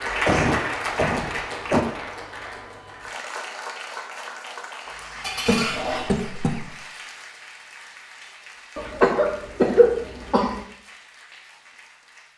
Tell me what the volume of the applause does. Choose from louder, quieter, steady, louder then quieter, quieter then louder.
quieter.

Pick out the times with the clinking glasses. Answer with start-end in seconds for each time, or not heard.
5.2-6.2.